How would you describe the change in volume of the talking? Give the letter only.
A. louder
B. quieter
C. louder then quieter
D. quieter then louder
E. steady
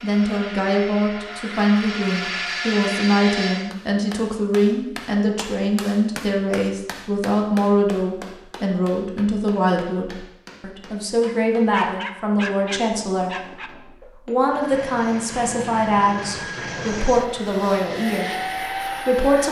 E.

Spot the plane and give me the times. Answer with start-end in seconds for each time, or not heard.
0.0-3.8, 14.4-19.4.